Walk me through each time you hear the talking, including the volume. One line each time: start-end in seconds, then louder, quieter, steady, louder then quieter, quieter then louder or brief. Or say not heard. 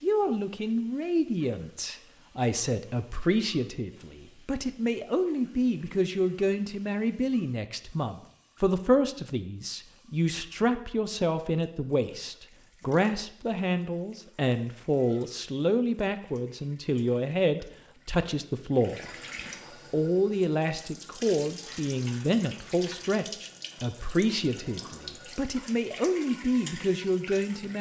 0.0-27.7 steady.